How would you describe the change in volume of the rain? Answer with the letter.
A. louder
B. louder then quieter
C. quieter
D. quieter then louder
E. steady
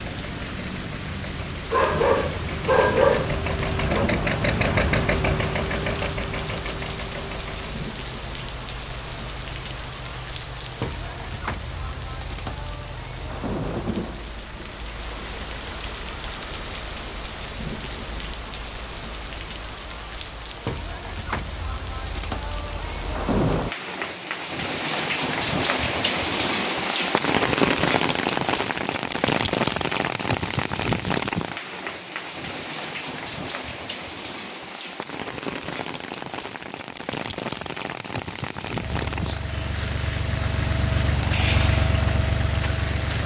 B.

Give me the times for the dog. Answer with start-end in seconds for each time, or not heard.
1.7-4.0.